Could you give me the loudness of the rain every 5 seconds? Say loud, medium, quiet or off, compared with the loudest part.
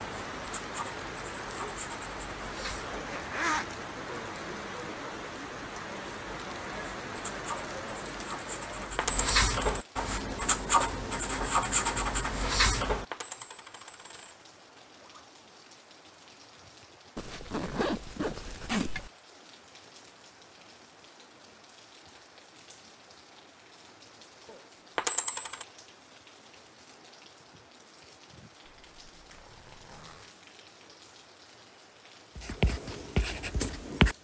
loud, loud, quiet, quiet, quiet, quiet, quiet.